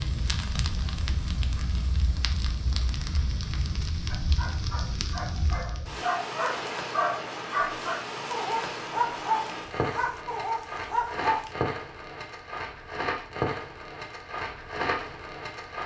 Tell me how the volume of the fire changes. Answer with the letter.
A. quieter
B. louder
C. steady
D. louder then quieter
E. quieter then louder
C.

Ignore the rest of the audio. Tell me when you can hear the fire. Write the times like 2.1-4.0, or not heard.
0.0-15.8.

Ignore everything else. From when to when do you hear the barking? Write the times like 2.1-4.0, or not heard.
4.0-11.5.